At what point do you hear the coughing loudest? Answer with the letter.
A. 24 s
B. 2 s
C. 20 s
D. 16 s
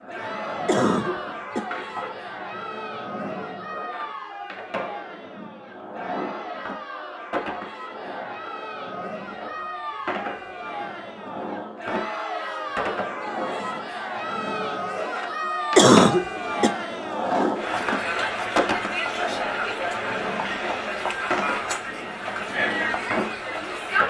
D.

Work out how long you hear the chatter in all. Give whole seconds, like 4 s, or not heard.
24 s.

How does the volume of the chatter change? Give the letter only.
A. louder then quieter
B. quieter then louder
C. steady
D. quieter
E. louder
E.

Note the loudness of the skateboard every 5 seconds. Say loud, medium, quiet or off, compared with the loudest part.
medium, medium, medium, loud, loud.